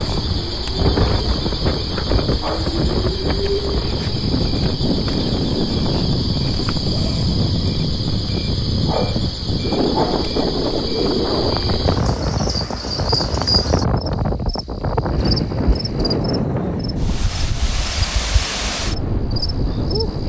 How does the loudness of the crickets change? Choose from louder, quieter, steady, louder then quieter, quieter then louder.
quieter.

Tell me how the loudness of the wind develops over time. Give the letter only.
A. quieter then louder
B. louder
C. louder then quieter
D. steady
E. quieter
D.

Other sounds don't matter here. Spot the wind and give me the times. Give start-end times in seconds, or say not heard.
0.0-20.2.